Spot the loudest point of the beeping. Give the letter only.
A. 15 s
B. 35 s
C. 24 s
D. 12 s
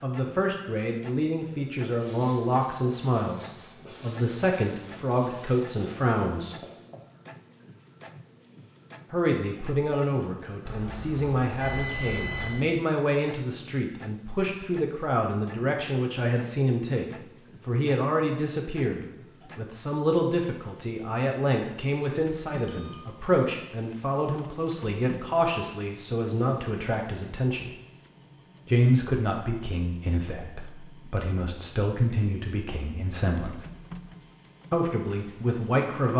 D.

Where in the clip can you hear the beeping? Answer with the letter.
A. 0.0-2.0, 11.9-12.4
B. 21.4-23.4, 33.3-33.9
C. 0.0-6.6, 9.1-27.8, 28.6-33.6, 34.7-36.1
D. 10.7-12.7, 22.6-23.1
D.